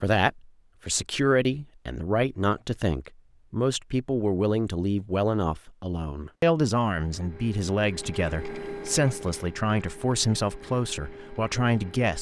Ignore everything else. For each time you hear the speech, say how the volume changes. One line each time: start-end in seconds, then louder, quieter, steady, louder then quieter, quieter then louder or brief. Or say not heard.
0.0-12.1 steady.